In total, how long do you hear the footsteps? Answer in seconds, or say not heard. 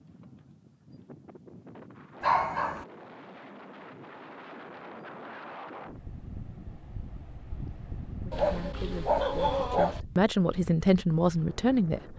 not heard.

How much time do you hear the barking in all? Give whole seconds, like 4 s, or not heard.
2 s.